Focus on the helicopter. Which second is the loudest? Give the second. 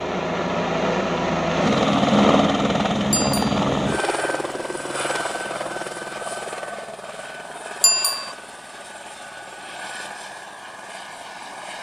2 s.